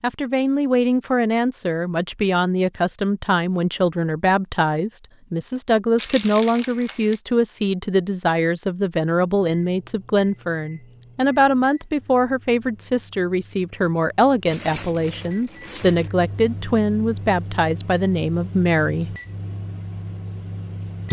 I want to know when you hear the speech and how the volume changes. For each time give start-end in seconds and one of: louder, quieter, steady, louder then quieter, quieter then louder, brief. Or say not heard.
0.0-19.1 steady.